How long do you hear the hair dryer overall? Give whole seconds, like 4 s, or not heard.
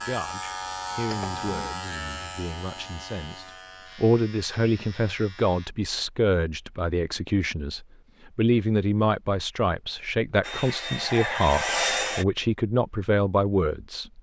2 s.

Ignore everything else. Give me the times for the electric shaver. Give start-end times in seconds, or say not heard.
0.0-5.7.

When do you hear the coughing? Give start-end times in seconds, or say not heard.
1.1-1.7.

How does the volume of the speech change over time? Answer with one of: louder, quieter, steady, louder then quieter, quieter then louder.
louder.